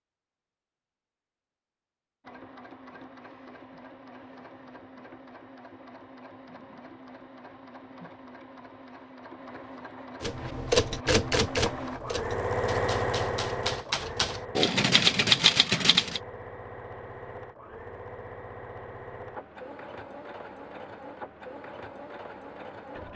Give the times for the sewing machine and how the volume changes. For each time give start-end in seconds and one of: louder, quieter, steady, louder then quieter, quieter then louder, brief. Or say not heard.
2.2-23.1 louder then quieter.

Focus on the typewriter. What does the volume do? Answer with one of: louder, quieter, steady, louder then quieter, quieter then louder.
quieter then louder.